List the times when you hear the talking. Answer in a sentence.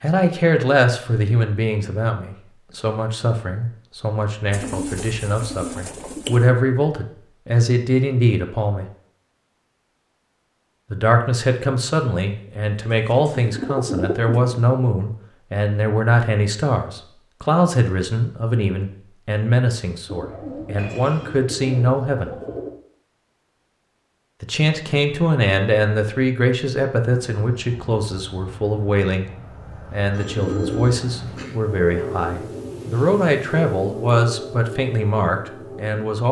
You can hear the talking from 0.0 to 8.9 s, from 10.9 to 22.3 s, from 24.4 to 29.3 s and from 29.9 to 36.2 s.